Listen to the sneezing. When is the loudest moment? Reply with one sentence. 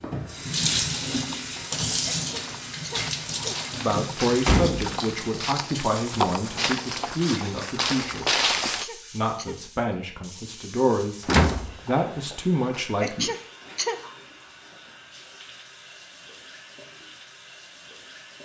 The loudest moment of the sneezing is at 13 seconds.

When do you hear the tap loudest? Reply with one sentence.
The loudest moment of the tap is at 1 second.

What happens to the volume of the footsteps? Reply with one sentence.
The loudness of the footsteps goes up.